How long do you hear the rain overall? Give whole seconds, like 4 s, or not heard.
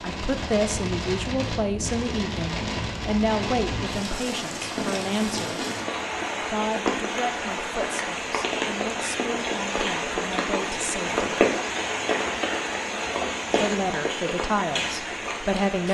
16 s.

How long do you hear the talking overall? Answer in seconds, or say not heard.
13 s.